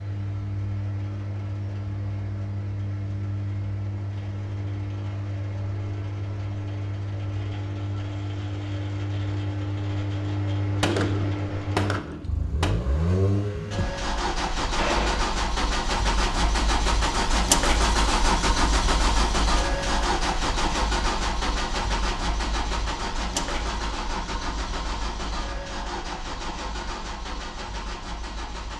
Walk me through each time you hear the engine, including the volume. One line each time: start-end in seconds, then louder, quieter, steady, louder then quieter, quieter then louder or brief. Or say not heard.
0.0-28.7 louder then quieter.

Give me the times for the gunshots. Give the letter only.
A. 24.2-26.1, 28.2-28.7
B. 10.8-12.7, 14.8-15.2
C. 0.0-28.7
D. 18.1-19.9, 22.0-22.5
B.